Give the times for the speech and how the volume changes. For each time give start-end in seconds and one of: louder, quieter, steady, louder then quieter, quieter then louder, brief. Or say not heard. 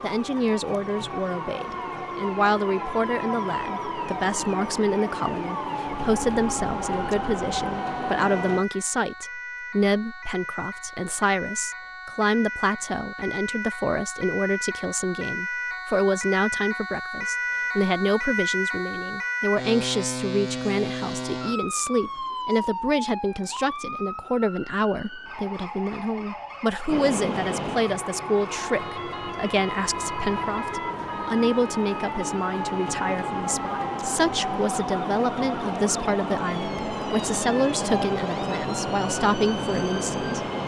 0.0-40.3 steady.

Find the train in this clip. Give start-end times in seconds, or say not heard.
0.0-8.7, 26.9-40.6.